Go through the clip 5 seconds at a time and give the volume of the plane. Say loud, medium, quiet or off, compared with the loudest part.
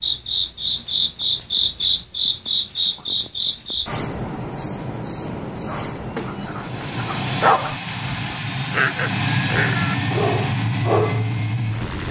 off, loud, loud.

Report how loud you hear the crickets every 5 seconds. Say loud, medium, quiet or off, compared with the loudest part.
loud, medium, off.